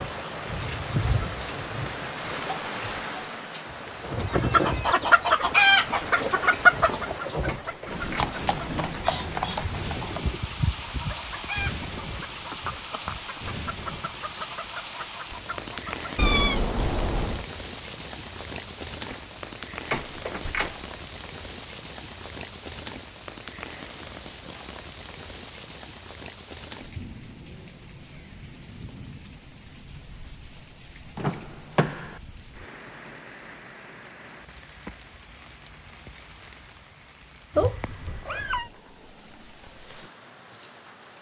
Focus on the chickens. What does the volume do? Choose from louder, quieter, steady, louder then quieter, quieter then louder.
quieter.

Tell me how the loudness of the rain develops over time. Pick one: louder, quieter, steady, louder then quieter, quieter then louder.
quieter.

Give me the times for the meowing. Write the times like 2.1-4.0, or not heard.
4.2-4.8, 16.1-17.4, 37.5-38.7.